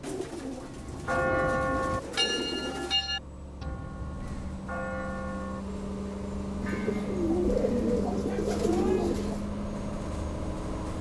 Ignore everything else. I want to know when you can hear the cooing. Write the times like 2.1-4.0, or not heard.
0.0-3.0, 6.6-9.4.